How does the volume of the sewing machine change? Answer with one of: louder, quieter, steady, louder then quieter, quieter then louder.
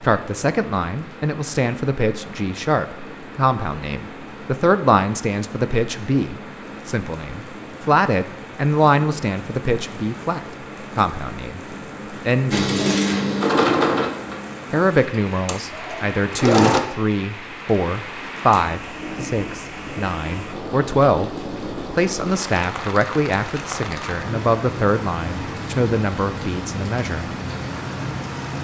quieter.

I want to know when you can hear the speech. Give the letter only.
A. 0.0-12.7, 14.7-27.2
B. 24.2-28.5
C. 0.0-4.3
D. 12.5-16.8
A.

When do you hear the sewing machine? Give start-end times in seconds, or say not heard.
12.5-16.8.